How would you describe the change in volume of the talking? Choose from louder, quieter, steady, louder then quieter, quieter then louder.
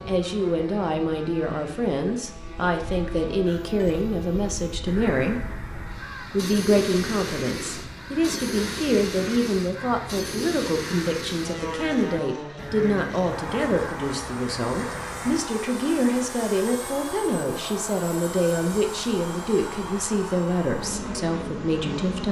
steady.